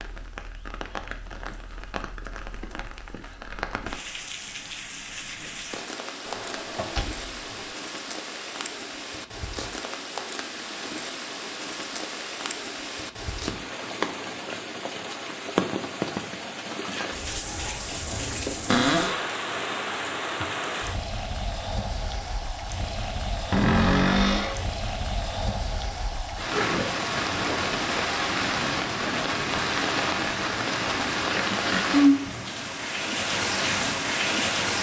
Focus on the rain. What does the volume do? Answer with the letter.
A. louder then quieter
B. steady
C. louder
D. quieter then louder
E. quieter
C.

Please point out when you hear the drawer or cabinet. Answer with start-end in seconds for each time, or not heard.
6.2-7.7, 18.6-19.2, 23.5-24.6.